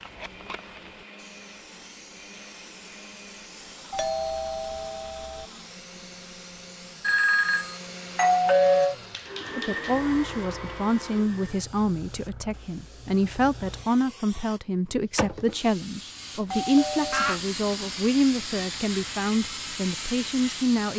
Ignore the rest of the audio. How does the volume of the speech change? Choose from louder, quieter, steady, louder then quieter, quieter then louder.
steady.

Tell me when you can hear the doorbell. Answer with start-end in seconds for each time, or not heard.
3.9-5.5, 7.0-8.9, 16.5-17.4.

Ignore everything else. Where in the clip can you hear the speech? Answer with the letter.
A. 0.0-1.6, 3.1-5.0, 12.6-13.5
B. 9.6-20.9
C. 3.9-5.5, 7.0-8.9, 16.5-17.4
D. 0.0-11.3
B.